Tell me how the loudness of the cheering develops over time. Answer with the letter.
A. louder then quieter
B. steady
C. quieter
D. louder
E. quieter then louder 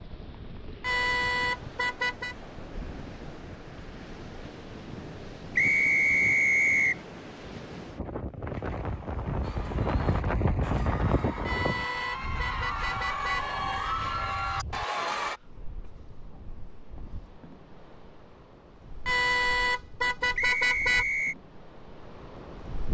D.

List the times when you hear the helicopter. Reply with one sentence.
The helicopter can't be heard in this clip.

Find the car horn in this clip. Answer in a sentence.
The car horn can be heard from 0.8 to 2.4 s, from 11.4 to 13.4 s and from 19.1 to 21.1 s.